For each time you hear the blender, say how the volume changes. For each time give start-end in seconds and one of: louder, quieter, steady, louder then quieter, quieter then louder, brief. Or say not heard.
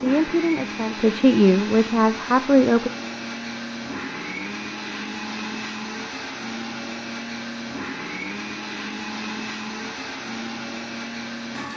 0.0-11.7 steady.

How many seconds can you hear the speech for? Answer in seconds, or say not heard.
3 s.